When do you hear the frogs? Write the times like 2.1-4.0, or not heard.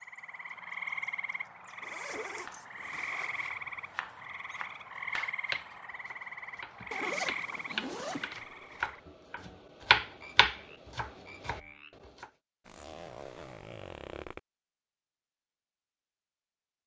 0.0-11.9.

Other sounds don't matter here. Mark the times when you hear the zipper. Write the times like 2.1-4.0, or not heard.
1.8-3.5, 6.9-8.3, 12.7-14.4.